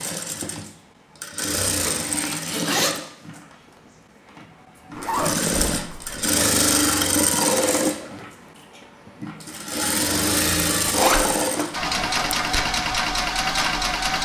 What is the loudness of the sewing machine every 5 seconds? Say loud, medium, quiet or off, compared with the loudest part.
medium, loud, loud.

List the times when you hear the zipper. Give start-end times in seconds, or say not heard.
1.8-3.0, 5.0-6.3, 10.8-11.2.